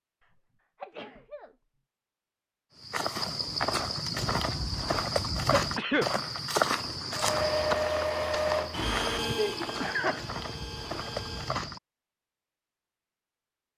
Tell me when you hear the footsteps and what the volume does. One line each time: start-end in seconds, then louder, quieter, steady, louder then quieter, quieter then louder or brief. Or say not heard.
2.8-11.8 quieter.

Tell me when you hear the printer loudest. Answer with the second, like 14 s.
8 s.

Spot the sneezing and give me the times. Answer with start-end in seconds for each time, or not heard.
0.8-1.6, 5.5-6.1, 9.3-10.3.